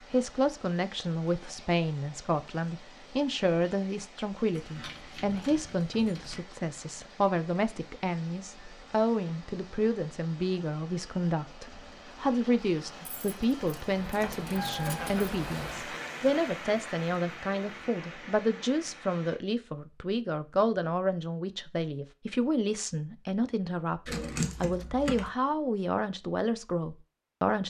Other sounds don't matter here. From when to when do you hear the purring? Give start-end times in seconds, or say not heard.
not heard.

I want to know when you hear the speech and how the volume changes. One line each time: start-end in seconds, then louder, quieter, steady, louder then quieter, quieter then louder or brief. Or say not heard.
0.1-27.6 steady.